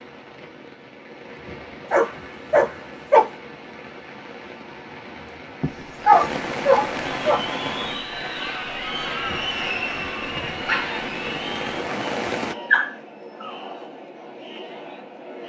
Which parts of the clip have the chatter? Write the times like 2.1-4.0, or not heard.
7.0-15.4.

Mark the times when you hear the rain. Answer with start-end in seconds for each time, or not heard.
0.0-12.6.